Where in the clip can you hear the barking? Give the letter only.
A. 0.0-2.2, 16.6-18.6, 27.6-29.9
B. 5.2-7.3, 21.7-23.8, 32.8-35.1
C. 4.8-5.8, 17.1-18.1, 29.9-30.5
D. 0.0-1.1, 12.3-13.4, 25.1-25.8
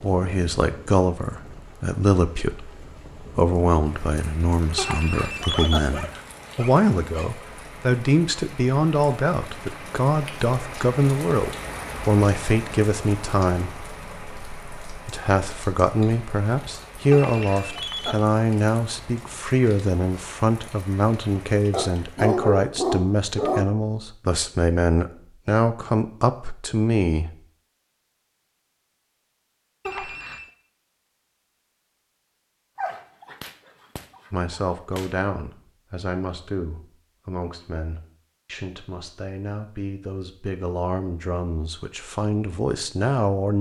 B.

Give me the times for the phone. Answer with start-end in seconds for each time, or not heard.
4.8-5.8, 17.1-18.1, 29.9-30.5.